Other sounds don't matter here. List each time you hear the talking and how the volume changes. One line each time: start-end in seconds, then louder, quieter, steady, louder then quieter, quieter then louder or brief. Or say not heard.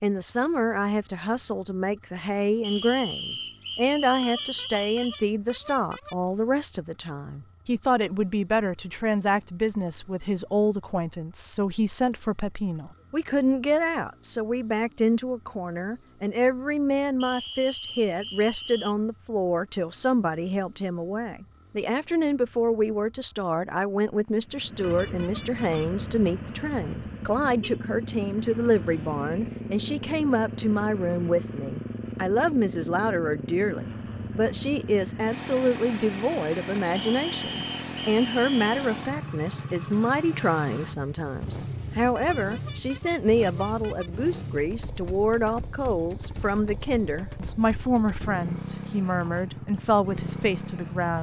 0.0-51.1 steady.